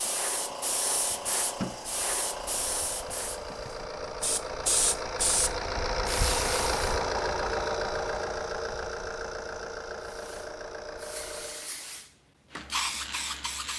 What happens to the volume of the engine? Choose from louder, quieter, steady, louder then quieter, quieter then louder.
louder then quieter.